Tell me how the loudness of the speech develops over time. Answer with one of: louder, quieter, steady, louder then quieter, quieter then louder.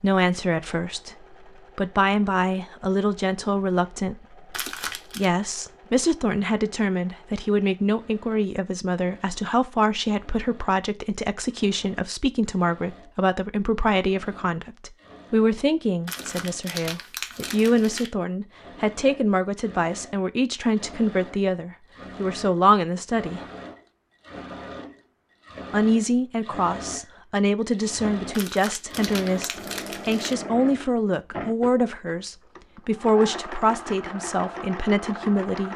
steady.